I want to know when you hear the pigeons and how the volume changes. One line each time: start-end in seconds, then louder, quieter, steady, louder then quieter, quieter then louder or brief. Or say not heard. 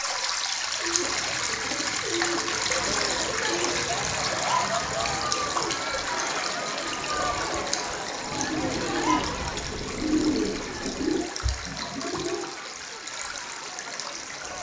0.6-12.6 louder.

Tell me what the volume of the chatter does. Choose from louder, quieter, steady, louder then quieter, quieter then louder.
quieter.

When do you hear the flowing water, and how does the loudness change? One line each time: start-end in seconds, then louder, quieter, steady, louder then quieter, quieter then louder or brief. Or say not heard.
0.0-14.5 quieter.